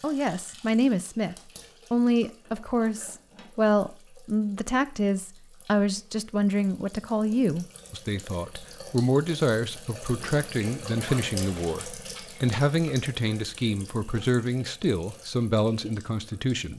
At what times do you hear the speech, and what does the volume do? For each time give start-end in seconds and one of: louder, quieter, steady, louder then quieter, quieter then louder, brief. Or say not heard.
0.0-16.7 steady.